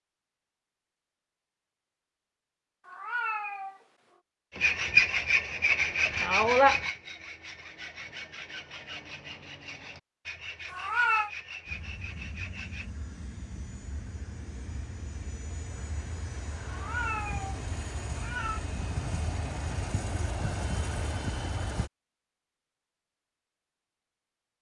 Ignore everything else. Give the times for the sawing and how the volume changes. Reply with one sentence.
You can hear the sawing from 4.5 to 12.9 s, getting quieter.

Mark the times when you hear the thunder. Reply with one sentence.
You can't hear the thunder here.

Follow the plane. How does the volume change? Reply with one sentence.
The loudness of the plane goes up.